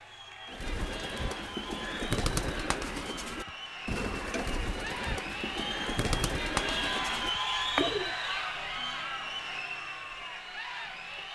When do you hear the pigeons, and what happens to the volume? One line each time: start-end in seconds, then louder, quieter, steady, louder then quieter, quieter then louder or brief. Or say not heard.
0.5-8.2 steady.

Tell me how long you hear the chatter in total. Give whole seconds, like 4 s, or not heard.
11 s.